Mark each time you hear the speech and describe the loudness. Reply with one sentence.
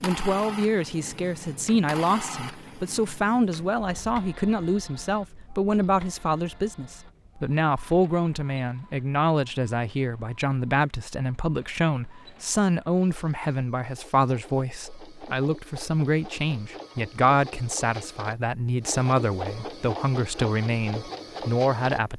You can hear the speech from 0.0 to 22.1 s, at a steady volume.